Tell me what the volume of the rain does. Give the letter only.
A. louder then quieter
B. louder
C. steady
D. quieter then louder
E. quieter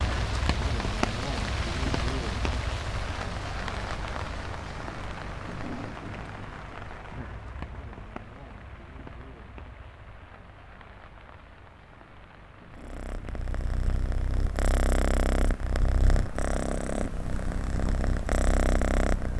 E.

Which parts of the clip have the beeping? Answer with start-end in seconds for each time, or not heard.
not heard.